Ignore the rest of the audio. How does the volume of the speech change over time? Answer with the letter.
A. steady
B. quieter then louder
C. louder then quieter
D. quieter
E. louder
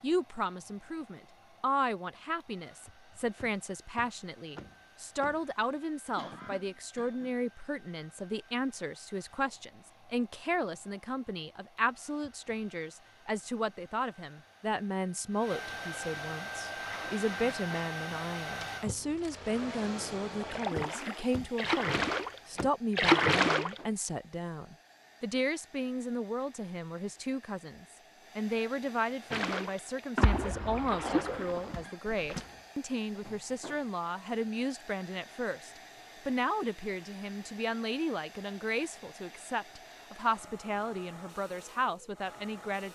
A.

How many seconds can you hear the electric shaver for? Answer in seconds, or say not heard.
not heard.